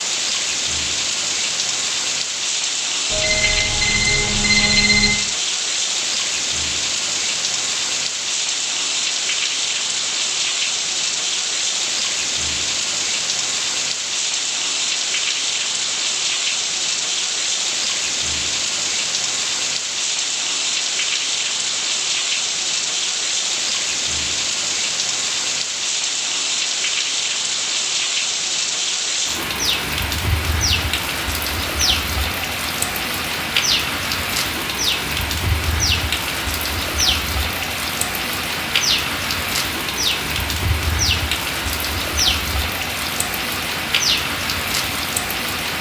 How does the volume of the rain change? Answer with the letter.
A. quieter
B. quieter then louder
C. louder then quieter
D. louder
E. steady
E.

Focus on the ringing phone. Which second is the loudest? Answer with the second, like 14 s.
5 s.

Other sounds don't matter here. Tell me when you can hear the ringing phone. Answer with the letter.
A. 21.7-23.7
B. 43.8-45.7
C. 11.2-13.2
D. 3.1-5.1
D.